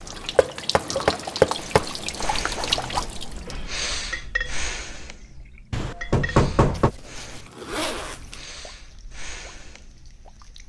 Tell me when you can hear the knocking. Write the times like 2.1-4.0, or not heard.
0.3-1.9, 5.7-6.9.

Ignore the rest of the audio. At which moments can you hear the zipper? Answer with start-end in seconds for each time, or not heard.
2.2-3.1, 6.7-8.4.